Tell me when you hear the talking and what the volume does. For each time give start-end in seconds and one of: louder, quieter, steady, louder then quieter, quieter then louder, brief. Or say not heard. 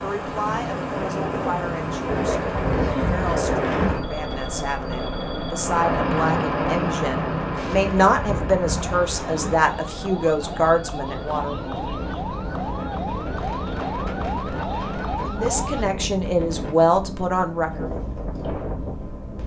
0.0-11.6 louder
15.2-18.0 brief.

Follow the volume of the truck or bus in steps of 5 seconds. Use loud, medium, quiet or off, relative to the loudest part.
loud, loud, medium, quiet.